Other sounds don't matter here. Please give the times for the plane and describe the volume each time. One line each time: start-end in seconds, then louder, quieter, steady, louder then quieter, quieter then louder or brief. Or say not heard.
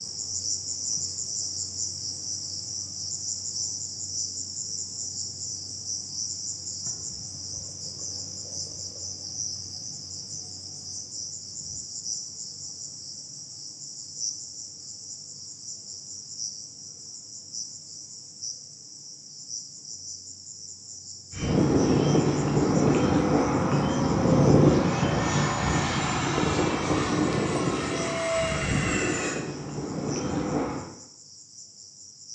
21.3-30.9 quieter.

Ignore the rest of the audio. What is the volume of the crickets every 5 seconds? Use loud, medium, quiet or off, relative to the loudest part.
loud, loud, medium, medium, medium, quiet, quiet.